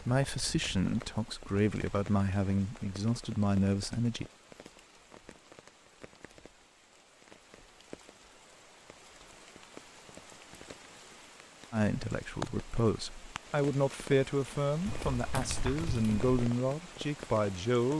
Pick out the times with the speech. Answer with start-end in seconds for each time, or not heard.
0.0-4.2, 11.7-17.9.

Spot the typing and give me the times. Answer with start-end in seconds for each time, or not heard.
14.8-16.4.